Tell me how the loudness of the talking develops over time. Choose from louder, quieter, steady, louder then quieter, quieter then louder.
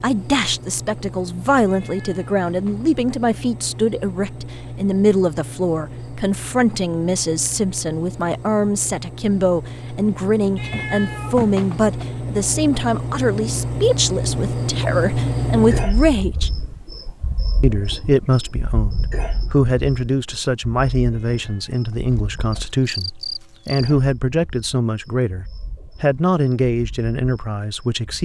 steady.